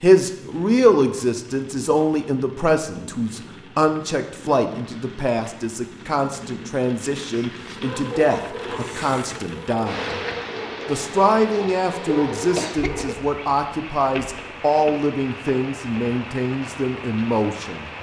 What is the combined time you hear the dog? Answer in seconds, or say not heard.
5 s.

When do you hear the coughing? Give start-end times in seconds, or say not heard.
12.6-13.1.